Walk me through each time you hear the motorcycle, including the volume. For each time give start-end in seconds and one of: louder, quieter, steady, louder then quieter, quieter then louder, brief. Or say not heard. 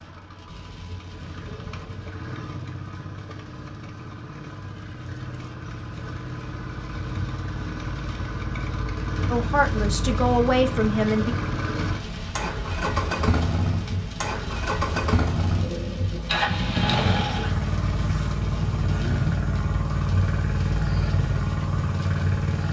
0.0-22.6 louder.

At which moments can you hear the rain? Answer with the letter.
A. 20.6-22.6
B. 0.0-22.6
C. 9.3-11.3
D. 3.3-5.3
B.